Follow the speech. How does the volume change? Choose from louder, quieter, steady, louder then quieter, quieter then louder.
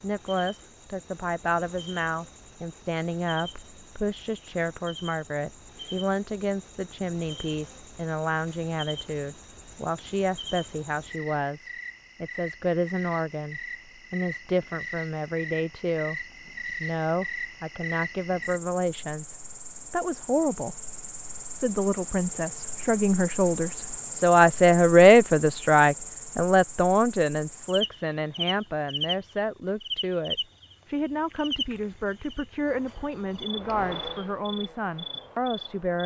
louder then quieter.